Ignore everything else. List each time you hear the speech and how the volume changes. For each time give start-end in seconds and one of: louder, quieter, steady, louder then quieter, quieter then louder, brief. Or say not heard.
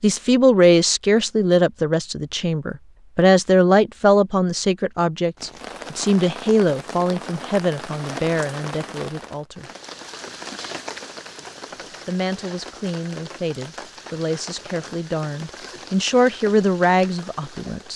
0.0-9.7 quieter
12.1-17.9 louder.